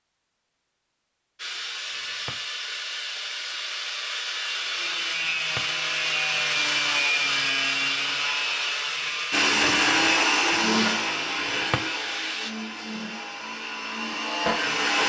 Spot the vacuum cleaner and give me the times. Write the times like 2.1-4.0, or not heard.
9.3-15.0.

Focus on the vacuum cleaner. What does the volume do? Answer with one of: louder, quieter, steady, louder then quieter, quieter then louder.
quieter then louder.